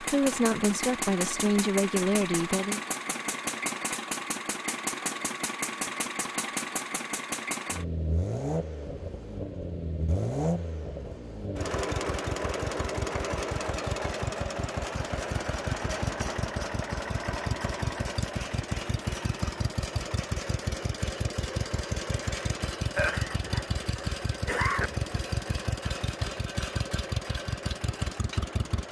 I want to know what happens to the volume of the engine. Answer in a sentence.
The loudness of the engine stays about the same.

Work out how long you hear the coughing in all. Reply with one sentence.
You can hear the coughing for 2 seconds altogether.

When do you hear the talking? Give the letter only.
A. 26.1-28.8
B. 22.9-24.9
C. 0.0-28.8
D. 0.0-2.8
D.